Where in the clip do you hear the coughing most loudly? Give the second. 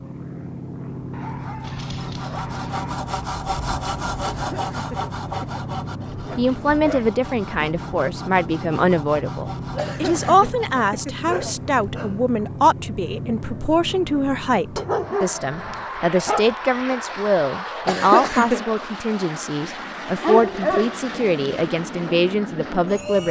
18 s.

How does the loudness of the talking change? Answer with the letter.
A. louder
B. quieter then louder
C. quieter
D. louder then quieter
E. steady
E.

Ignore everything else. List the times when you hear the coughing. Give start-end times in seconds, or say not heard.
4.2-5.7, 9.8-11.2, 17.9-18.8.